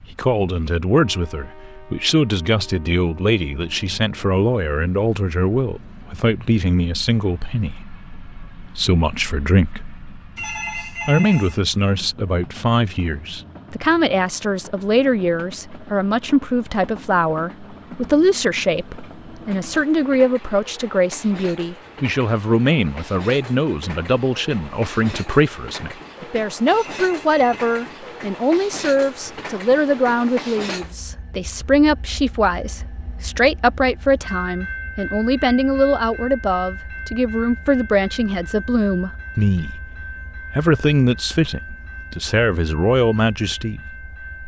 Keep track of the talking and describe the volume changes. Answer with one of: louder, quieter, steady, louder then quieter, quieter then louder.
steady.